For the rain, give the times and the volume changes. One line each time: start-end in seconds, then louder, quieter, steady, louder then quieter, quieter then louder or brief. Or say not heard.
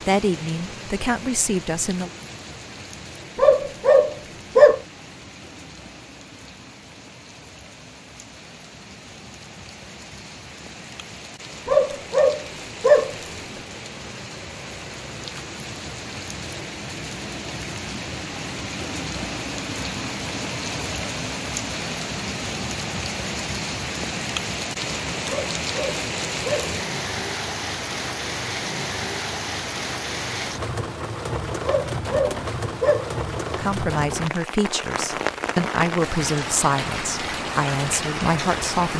0.0-38.9 louder.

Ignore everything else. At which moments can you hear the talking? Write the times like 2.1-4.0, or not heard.
0.1-2.1, 33.5-38.9.